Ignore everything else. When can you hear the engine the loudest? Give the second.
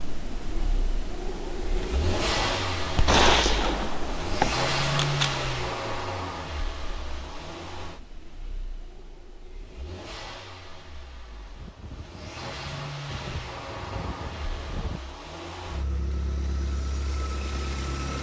5 s.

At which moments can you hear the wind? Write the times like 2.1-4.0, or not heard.
0.0-15.0.